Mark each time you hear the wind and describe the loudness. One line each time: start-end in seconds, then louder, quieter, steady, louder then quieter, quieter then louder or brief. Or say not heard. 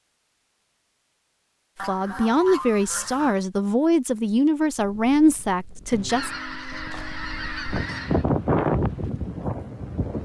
4.8-10.2 louder then quieter.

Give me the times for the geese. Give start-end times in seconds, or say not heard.
1.8-3.4, 5.9-8.2.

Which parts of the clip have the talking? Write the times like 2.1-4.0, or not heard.
1.8-6.3.